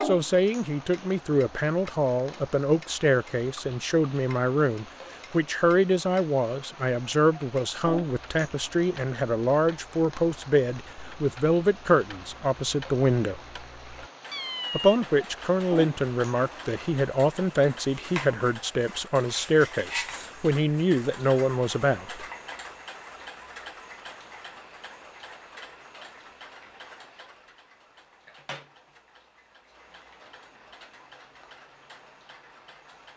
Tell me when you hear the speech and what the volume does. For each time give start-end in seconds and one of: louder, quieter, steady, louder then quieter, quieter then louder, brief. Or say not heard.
0.0-13.4 steady
14.7-22.2 steady.